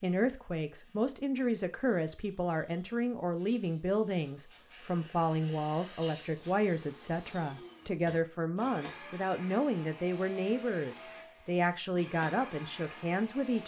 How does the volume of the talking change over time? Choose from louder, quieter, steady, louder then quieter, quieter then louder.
steady.